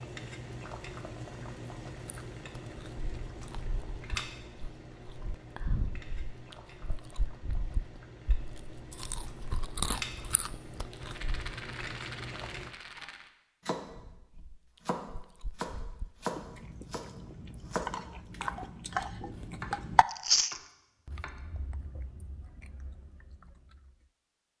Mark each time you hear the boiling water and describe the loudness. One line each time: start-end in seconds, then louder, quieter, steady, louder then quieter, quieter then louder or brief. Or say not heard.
0.0-12.8 quieter then louder.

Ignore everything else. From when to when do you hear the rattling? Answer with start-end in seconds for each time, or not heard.
10.9-13.3.